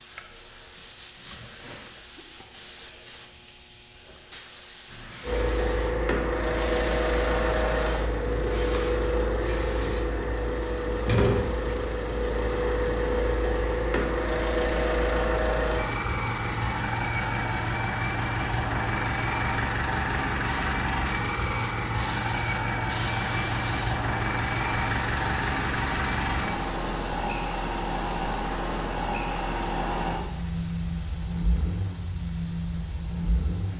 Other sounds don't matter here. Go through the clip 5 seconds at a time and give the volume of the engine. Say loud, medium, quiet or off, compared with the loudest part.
off, loud, loud, loud, loud, loud, medium.